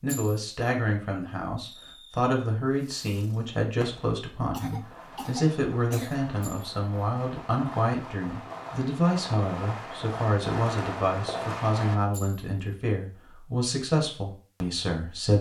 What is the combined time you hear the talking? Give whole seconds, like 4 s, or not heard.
15 s.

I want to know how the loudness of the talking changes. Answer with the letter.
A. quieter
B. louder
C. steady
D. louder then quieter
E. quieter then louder
C.